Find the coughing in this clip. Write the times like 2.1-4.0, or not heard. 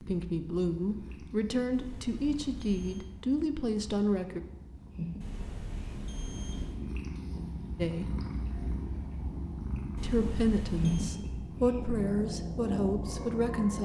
not heard.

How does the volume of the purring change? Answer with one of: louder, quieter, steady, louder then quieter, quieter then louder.
louder.